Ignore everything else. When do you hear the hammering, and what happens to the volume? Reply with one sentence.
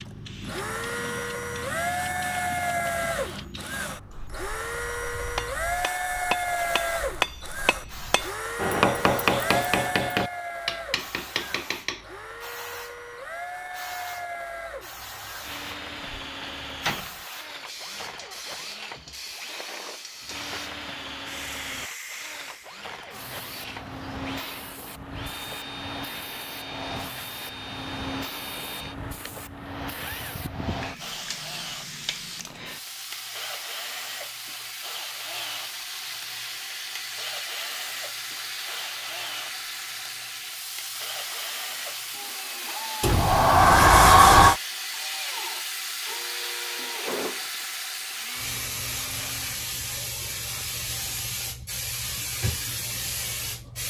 The hammering can be heard from 5.2 to 12.1 s, getting louder then quieter.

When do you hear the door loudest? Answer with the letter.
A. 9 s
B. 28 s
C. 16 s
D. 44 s
D.